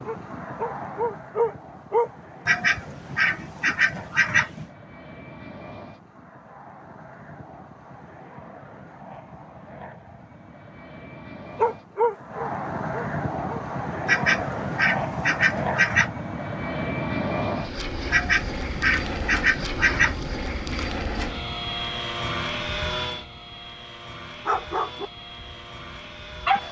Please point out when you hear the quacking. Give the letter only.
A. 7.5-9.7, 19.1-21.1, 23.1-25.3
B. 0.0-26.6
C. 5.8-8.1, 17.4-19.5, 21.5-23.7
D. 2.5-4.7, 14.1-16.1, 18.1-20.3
D.